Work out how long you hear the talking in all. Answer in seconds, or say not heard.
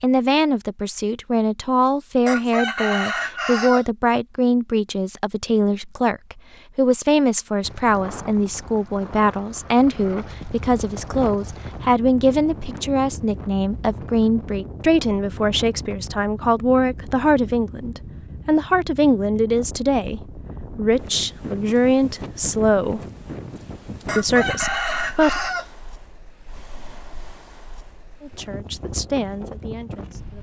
26 s.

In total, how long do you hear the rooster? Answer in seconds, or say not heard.
3 s.